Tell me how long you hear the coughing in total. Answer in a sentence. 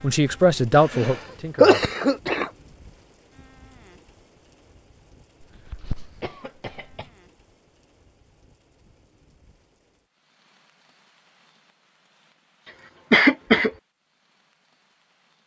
You can hear the coughing for 4 seconds altogether.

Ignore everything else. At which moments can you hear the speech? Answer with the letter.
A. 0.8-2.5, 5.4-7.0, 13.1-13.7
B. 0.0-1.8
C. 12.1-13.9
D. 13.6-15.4
B.